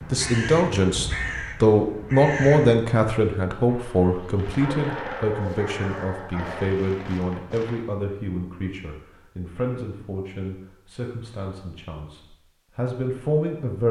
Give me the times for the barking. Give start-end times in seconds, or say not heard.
4.5-6.8.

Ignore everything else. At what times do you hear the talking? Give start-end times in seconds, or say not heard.
0.1-13.8.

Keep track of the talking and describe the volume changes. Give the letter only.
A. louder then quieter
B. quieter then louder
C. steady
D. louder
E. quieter
E.